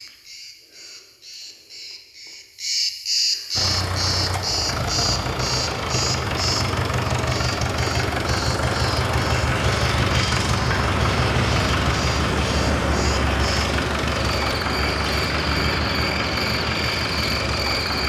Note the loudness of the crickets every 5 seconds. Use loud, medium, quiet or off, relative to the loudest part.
loud, loud, medium, loud.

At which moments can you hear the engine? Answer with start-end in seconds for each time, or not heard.
3.5-18.0.